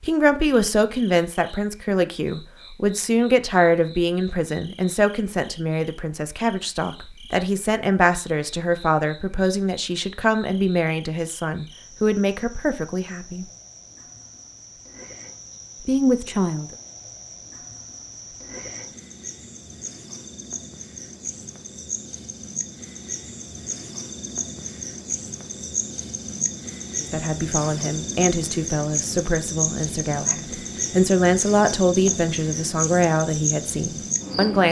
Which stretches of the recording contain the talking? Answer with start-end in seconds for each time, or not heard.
0.0-13.4, 15.8-16.7, 27.0-34.6.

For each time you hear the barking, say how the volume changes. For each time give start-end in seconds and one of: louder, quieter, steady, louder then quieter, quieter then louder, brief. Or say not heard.
not heard.